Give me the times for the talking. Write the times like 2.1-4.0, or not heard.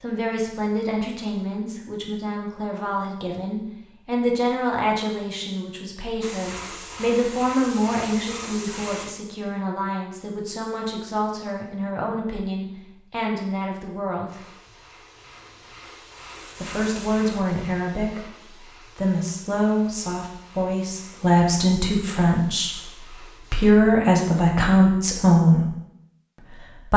0.0-14.4, 16.6-25.6.